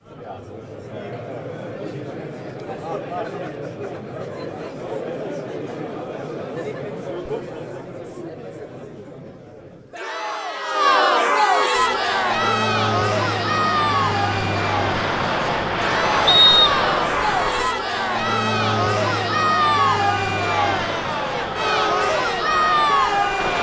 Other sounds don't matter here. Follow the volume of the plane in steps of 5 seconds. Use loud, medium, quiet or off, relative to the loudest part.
off, off, loud, loud, loud.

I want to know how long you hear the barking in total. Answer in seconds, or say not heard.
not heard.